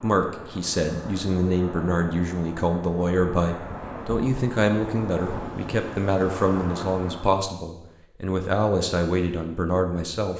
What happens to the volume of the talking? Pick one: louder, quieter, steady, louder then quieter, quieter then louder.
steady.